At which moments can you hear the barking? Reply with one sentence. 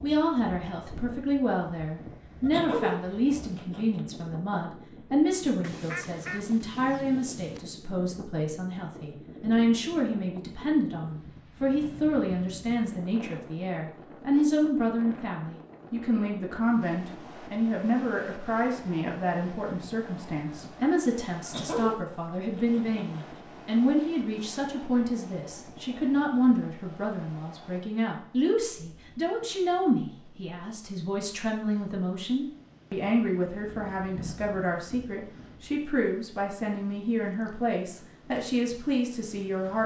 The barking can be heard from 2.5 to 4.0 s and from 21.4 to 23.4 s.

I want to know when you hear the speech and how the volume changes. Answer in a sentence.
You can hear the speech from 0.0 to 39.8 s, at a steady volume.